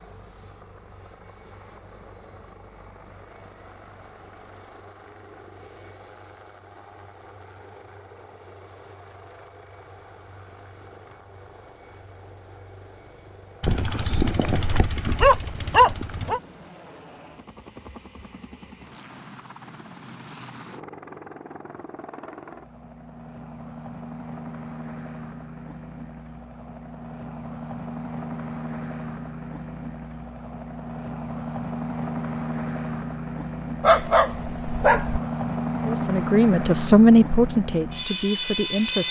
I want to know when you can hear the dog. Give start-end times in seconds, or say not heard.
13.6-16.4, 33.8-35.2.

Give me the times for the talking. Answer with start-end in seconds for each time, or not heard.
35.9-39.0.